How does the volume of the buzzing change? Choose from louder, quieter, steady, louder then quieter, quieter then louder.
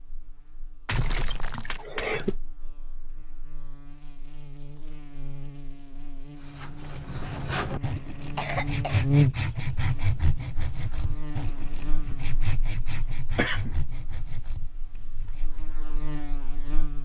louder then quieter.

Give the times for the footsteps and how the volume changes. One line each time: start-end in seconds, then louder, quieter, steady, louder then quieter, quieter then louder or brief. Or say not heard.
not heard.